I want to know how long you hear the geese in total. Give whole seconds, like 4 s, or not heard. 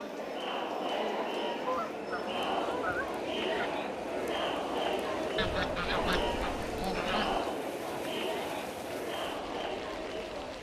4 s.